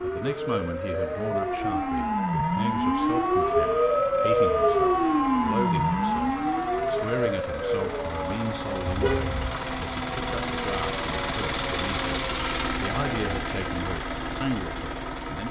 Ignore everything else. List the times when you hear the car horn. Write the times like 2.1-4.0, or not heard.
8.8-9.6.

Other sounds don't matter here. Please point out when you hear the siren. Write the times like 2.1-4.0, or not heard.
0.0-13.4.